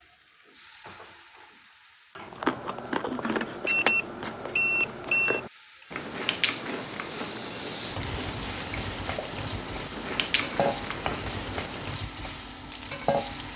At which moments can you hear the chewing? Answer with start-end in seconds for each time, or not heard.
2.2-12.1.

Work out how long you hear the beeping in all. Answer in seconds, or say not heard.
2 s.